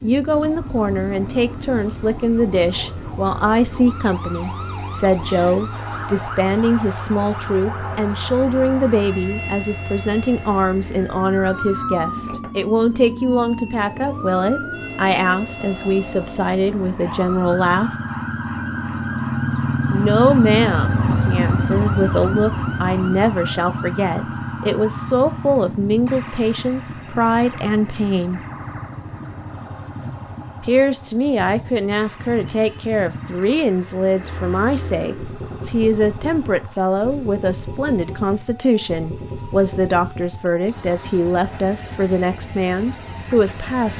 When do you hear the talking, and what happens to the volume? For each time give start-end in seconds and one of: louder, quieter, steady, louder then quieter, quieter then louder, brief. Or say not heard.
0.0-17.9 steady
19.9-28.4 steady
30.6-43.9 steady.